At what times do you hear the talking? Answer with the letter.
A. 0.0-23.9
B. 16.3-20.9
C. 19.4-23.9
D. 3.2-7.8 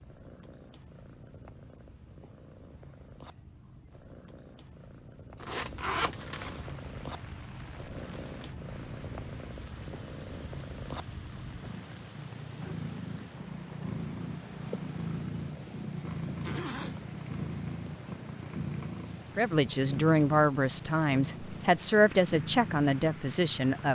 C.